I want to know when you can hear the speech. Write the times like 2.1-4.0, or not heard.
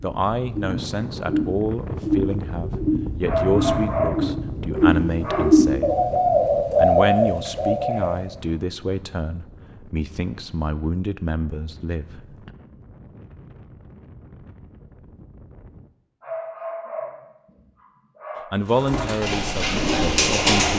0.0-6.0, 6.8-12.5, 18.5-20.7.